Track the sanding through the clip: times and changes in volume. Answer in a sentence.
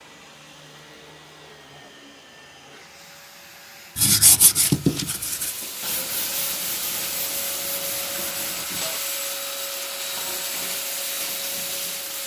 You can hear the sanding from 4.0 to 9.0 s, getting quieter.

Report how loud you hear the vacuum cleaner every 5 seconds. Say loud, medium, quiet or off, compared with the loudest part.
quiet, loud, loud.